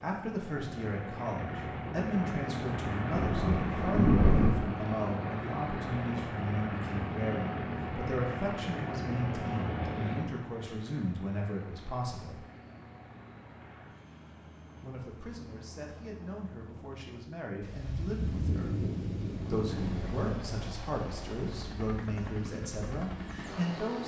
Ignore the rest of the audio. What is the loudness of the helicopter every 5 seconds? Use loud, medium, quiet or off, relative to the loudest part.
loud, loud, medium, quiet, medium.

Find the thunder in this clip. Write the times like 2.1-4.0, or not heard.
3.1-4.5, 17.6-20.4.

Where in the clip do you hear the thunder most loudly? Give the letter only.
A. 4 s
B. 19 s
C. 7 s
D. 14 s
A.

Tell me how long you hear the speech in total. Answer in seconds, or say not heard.
21 s.